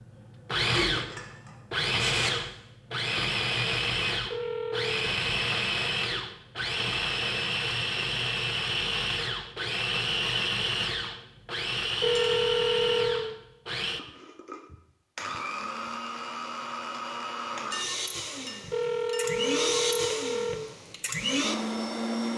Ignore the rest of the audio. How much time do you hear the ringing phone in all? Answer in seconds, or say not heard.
4 s.